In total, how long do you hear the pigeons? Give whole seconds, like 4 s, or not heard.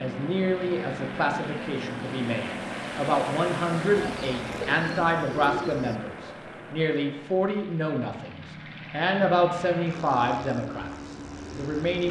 2 s.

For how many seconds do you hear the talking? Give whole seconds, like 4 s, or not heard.
12 s.